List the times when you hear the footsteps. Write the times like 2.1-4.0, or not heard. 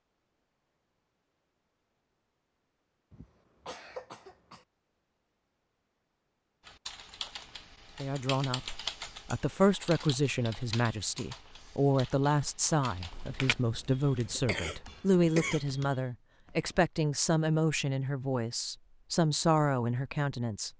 not heard.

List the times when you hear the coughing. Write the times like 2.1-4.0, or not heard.
3.1-4.7, 13.9-15.9.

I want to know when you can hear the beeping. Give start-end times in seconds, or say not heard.
not heard.